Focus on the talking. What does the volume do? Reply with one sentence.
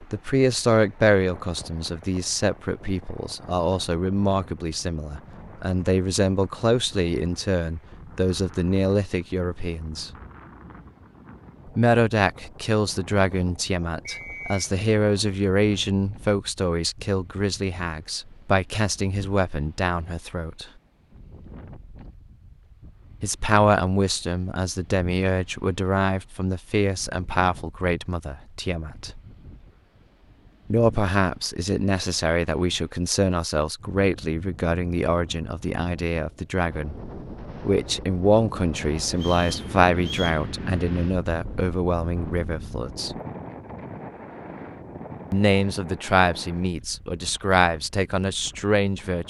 The loudness of the talking stays about the same.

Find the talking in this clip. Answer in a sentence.
The talking can be heard from 0.0 to 10.1 s, from 11.8 to 20.6 s, from 23.2 to 29.2 s, from 30.7 to 37.0 s, from 37.6 to 43.1 s and from 45.3 to 49.2 s.